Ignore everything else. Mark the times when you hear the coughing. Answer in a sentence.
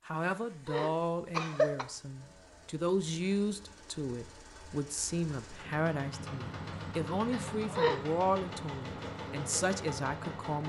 You can hear the coughing from 0.7 to 1.9 s and from 7.3 to 8.0 s.